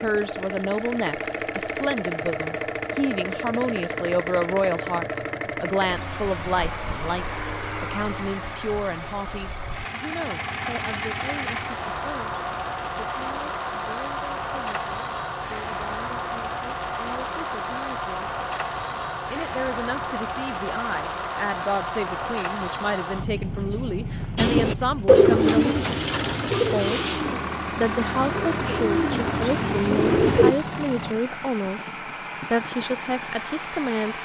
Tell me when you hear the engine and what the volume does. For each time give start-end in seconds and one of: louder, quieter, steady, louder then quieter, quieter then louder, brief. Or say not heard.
0.0-34.2 steady.